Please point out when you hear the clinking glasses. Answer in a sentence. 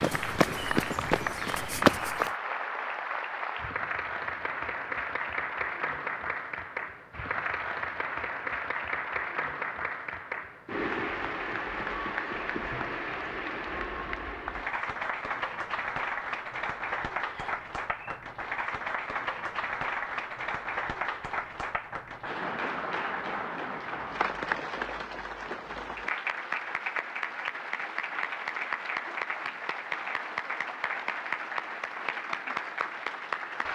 The clinking glasses can't be heard in this clip.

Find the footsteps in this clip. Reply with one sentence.
The footsteps can be heard from 0.0 to 2.3 s.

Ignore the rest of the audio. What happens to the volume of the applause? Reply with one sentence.
The volume of the applause stays about the same.